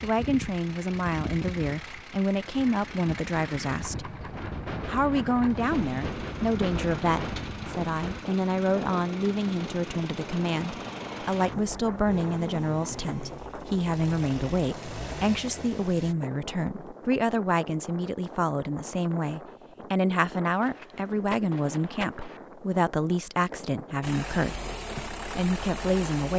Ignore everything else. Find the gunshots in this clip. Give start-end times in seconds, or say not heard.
4.2-8.2, 20.4-22.4.